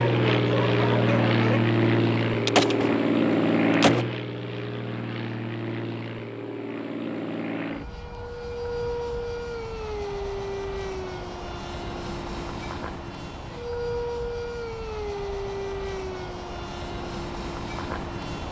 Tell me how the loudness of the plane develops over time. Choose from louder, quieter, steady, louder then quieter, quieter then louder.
quieter.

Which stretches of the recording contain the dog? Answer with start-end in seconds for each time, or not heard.
0.0-1.6.